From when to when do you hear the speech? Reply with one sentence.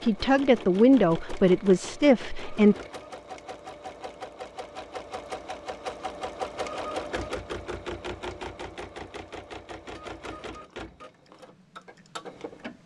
The speech can be heard from 0.0 to 2.8 s.